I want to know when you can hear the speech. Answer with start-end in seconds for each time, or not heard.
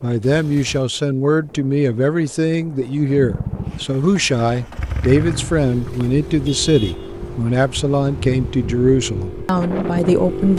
0.0-10.5.